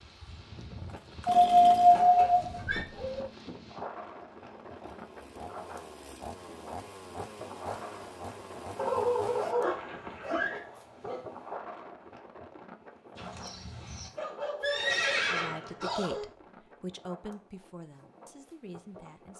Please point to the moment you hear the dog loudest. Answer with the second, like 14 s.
2 s.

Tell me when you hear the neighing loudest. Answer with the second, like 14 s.
15 s.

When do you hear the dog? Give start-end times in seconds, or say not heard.
1.3-3.2, 8.8-11.2, 13.2-15.3.